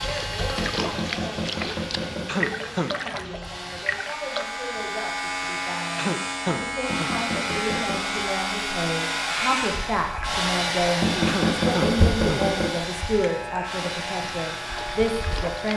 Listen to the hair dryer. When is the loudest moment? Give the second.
11 s.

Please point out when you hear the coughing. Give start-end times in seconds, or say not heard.
2.2-3.0, 6.0-7.1, 11.2-12.4.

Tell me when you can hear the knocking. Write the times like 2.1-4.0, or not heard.
0.6-2.5, 6.9-8.1, 11.0-12.8.